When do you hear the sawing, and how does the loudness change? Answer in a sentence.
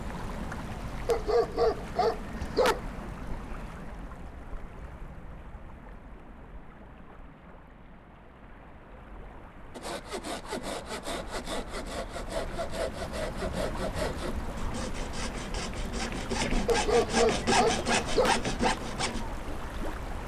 You can hear the sawing from 9.8 to 19.2 s, getting louder.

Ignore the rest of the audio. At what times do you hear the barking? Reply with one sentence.
You can hear the barking from 1.1 to 2.8 s and from 16.6 to 18.4 s.